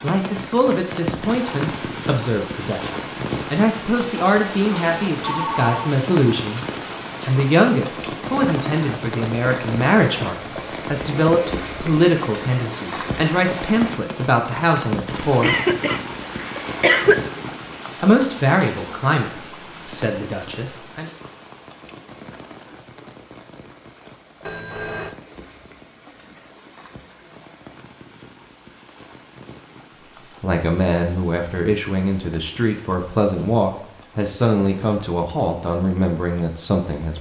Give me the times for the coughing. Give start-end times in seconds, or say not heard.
15.4-17.2.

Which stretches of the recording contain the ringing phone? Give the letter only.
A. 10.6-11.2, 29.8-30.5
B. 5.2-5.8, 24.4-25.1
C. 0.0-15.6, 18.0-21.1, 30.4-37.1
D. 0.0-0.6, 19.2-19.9
B.